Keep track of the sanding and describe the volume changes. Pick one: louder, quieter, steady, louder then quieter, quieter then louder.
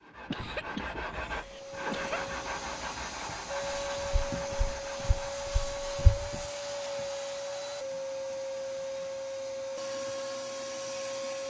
quieter.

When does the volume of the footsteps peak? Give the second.
6 s.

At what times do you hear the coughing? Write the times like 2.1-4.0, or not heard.
0.3-2.2.